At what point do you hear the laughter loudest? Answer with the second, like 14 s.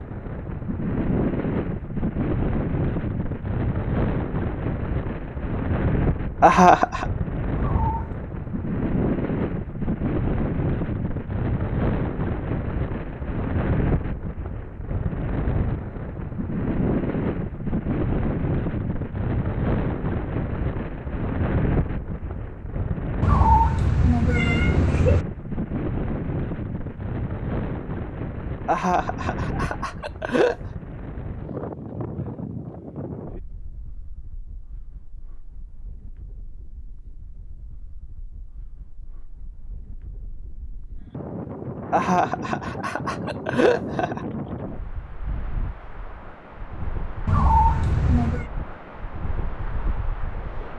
7 s.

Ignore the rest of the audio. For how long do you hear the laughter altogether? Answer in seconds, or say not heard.
5 s.